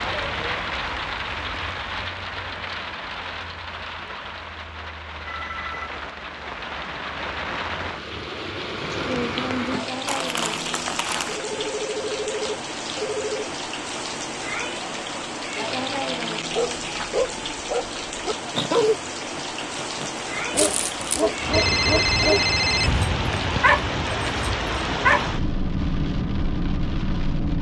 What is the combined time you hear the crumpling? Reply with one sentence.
The crumpling can be heard for 2 seconds in total.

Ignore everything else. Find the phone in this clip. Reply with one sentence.
The phone can be heard from 5.2 to 5.9 s, from 11.2 to 13.5 s and from 21.5 to 22.9 s.